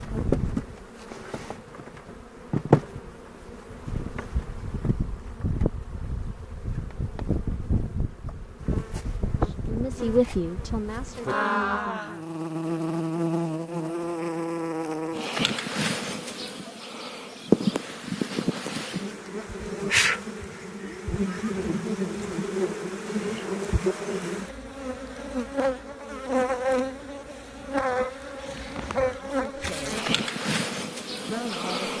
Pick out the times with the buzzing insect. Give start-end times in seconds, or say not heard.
0.0-31.9.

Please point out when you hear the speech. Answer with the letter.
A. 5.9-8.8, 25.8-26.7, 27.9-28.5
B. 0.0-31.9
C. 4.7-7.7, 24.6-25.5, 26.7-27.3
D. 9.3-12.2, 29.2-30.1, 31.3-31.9
D.